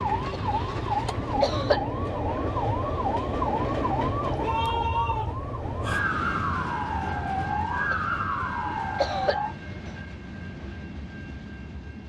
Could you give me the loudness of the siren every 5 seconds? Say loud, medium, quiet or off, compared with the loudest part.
loud, loud, off.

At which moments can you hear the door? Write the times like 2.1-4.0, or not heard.
not heard.